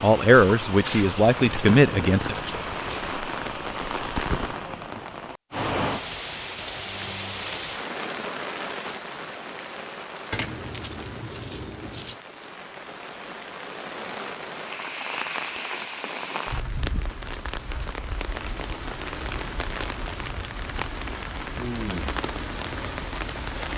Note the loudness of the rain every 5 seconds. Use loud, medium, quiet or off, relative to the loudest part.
loud, loud, medium, loud, loud.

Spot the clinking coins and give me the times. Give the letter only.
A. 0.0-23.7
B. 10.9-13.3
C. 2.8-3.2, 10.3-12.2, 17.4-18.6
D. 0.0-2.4
C.